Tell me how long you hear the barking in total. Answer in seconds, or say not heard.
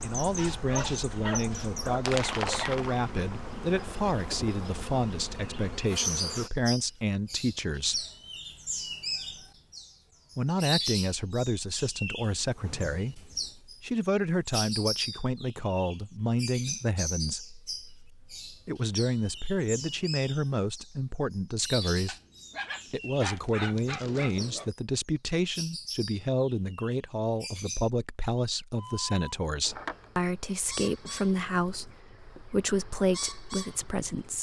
5 s.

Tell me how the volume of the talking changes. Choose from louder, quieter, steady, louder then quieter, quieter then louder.
steady.